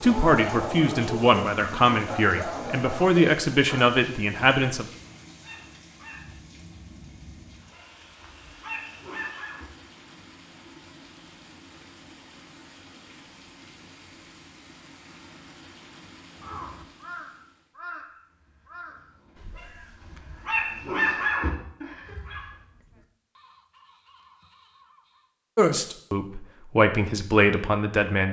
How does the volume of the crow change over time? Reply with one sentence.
The loudness of the crow goes down.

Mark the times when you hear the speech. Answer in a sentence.
You can hear the speech from 0.0 to 4.8 s and from 25.6 to 28.2 s.